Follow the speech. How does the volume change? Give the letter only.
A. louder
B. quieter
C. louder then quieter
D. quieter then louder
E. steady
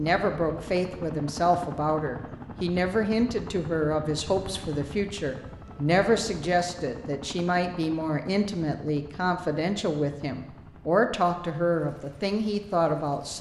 E.